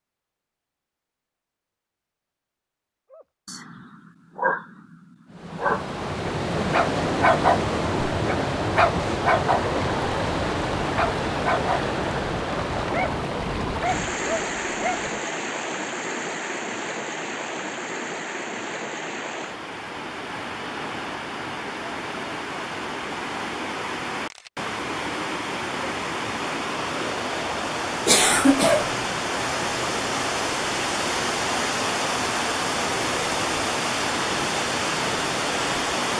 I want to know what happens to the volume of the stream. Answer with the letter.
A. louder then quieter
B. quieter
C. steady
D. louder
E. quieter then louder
E.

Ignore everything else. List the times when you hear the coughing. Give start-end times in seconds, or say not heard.
28.1-28.9.